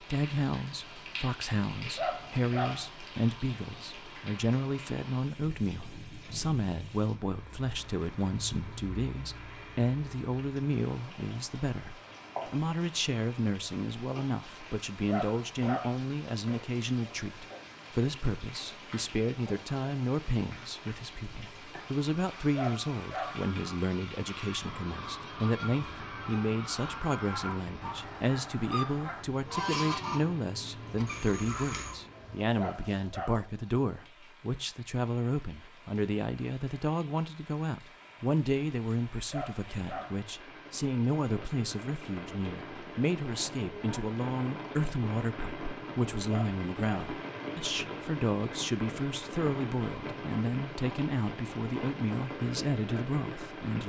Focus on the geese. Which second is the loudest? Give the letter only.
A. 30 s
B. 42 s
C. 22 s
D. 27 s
A.